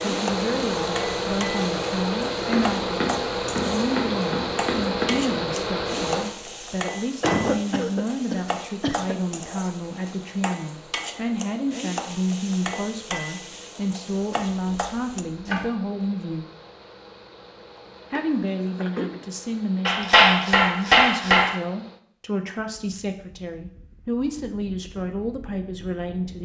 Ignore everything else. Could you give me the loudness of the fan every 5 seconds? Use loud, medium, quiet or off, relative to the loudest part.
loud, medium, quiet, quiet, quiet, quiet.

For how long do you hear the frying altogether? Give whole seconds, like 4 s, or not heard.
15 s.